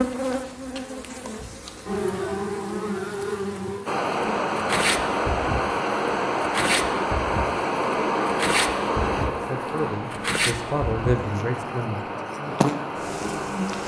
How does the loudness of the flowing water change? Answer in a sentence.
The volume of the flowing water goes down.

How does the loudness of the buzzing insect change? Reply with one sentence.
The loudness of the buzzing insect stays about the same.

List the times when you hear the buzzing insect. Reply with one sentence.
The buzzing insect can be heard from 0.0 to 13.8 s.